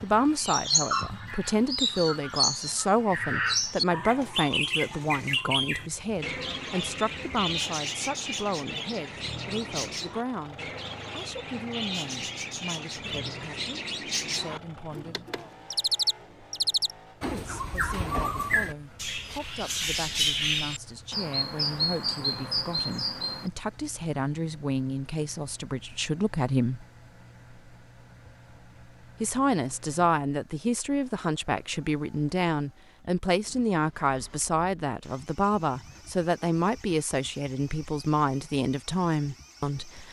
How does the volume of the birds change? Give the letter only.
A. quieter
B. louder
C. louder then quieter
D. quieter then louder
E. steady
D.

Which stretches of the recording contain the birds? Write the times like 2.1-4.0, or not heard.
0.0-23.5.